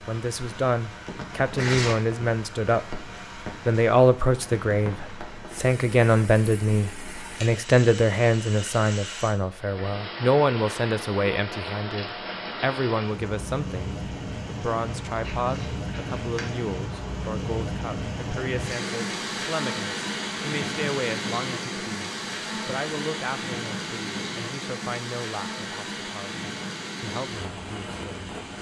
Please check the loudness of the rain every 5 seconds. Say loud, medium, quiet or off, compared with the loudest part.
medium, medium, loud, loud, loud, loud.